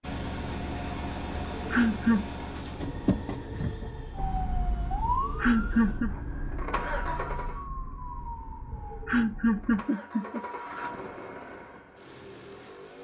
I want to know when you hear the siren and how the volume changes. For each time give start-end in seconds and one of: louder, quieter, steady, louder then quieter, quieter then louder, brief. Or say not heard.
4.1-9.8 quieter.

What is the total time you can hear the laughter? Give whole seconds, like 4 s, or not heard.
3 s.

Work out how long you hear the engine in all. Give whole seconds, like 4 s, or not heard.
12 s.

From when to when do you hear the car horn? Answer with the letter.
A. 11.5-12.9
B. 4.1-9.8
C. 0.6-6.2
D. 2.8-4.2
D.